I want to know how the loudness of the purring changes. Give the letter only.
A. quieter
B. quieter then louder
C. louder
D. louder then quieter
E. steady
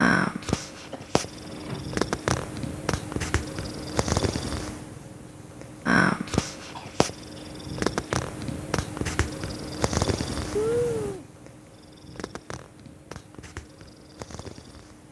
A.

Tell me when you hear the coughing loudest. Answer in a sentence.
The loudest moment of the coughing is at 11 seconds.